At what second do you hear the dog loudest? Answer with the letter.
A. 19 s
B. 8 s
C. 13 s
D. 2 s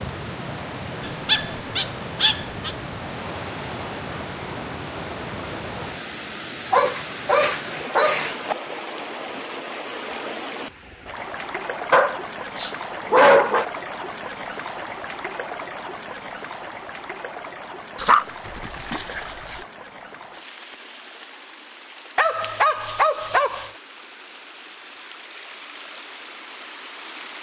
C.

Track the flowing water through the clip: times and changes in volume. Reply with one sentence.
You can hear the flowing water from 0.0 to 27.3 s, getting quieter.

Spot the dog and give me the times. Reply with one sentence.
The dog can be heard from 1.1 to 2.8 s, from 6.7 to 8.6 s, from 11.9 to 13.7 s, from 17.9 to 19.6 s and from 22.1 to 23.7 s.